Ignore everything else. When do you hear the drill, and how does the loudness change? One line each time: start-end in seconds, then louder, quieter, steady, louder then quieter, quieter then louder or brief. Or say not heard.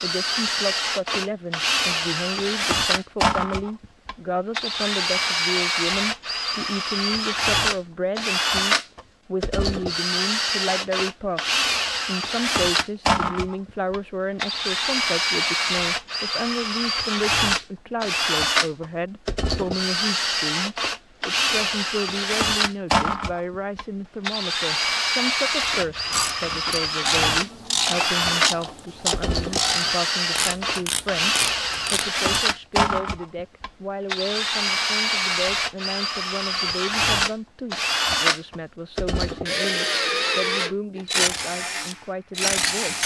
0.0-43.0 steady.